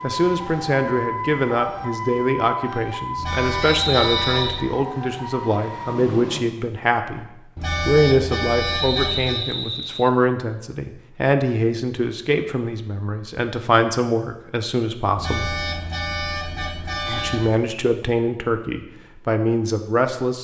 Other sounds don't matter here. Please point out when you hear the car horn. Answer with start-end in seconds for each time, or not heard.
3.1-4.7, 7.5-9.4, 15.2-17.5.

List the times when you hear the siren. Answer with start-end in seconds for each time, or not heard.
0.0-6.5.